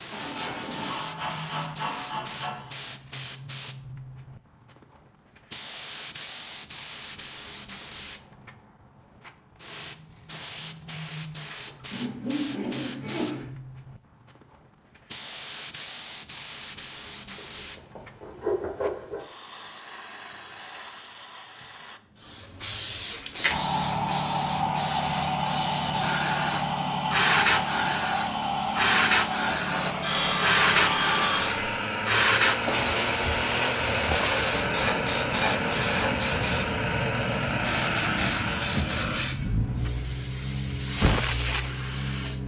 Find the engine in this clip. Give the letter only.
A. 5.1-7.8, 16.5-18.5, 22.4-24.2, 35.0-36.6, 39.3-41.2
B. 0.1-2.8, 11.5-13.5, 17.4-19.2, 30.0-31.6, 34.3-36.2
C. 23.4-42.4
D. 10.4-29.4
C.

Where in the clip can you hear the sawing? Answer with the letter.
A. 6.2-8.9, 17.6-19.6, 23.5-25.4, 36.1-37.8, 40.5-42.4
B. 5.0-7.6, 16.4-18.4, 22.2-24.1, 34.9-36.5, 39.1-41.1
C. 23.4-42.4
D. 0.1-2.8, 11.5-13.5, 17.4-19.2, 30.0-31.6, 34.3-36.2
D.